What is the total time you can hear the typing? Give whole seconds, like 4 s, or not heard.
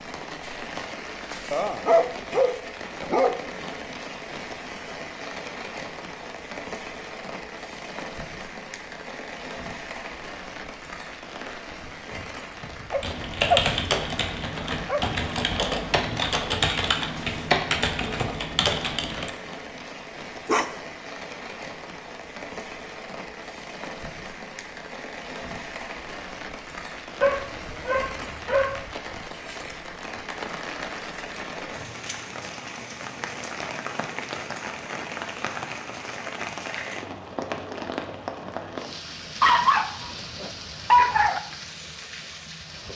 6 s.